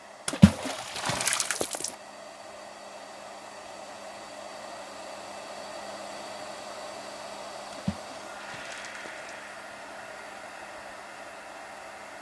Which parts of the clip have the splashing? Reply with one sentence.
You can hear the splashing from 0.2 to 1.9 s and from 7.7 to 9.3 s.